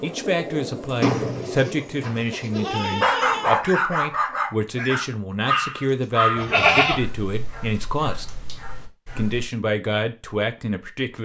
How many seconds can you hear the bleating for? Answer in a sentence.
The bleating can be heard for 3 seconds in total.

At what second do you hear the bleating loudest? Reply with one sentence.
The loudest moment of the bleating is at 7 seconds.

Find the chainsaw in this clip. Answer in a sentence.
You can't hear the chainsaw here.